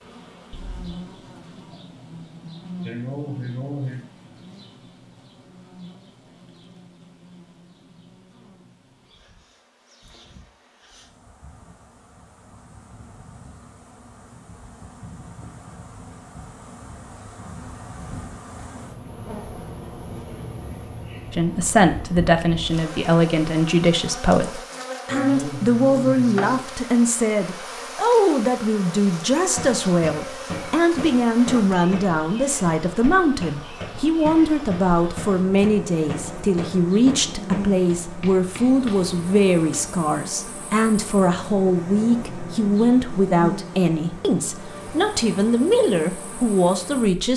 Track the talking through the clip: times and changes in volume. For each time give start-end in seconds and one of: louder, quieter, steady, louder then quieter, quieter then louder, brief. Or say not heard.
21.3-47.3 steady.